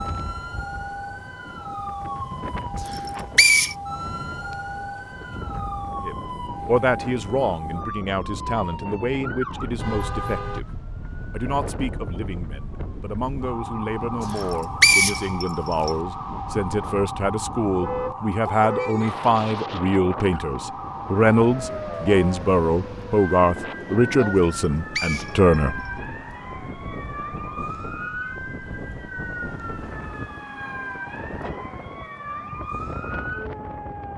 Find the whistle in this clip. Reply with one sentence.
You can hear the whistle from 2.9 to 3.8 s, from 14.3 to 15.9 s and from 24.4 to 25.9 s.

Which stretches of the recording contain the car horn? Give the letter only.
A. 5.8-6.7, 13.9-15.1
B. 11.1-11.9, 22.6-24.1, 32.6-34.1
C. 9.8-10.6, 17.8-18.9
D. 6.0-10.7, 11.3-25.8
C.